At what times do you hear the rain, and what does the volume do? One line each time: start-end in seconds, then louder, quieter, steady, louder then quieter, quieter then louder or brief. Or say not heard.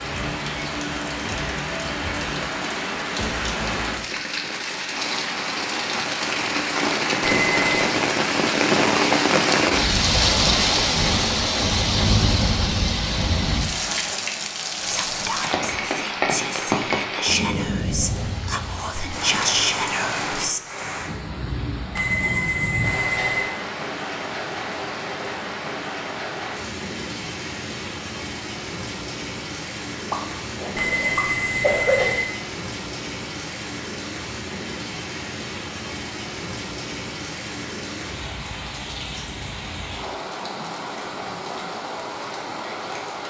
0.0-43.2 quieter.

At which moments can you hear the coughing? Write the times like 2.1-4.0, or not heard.
30.1-32.1.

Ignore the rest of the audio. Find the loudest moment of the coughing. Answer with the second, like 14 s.
32 s.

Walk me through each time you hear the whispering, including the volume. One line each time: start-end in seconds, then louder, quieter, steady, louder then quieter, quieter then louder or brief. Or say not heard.
14.8-20.8 louder.